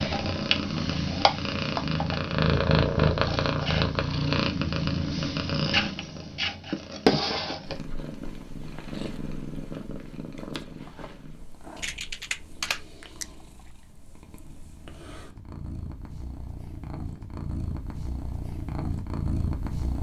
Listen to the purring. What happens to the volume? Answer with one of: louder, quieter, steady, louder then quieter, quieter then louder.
quieter then louder.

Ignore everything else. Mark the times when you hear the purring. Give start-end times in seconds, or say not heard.
0.0-19.9.